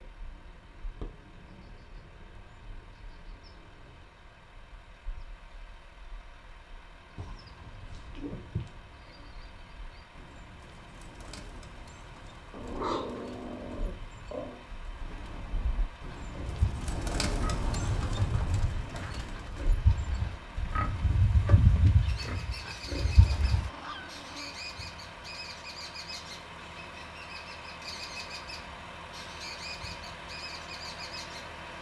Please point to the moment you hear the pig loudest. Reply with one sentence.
The loudest moment of the pig is at 22 seconds.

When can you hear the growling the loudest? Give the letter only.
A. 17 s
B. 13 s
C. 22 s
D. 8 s
B.